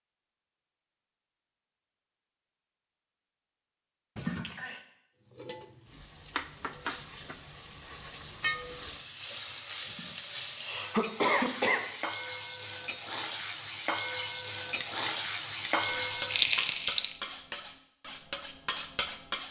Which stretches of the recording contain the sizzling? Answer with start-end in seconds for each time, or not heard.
5.2-17.2.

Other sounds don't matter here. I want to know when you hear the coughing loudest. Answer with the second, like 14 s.
11 s.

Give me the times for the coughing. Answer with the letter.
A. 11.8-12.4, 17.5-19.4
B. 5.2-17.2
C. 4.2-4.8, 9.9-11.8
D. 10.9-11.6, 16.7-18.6
C.